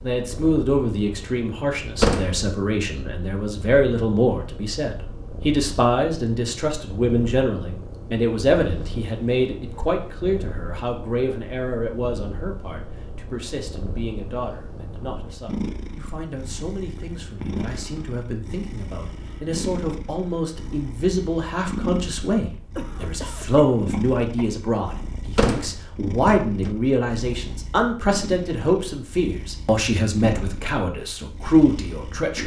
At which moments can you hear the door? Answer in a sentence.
The door can be heard from 2.0 to 2.5 s and from 25.4 to 26.8 s.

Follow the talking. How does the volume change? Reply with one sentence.
The loudness of the talking goes down, then up.